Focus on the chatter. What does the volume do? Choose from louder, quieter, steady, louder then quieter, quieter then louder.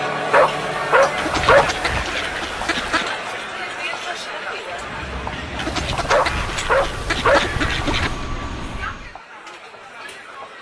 quieter.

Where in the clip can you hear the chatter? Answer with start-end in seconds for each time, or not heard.
0.0-10.5.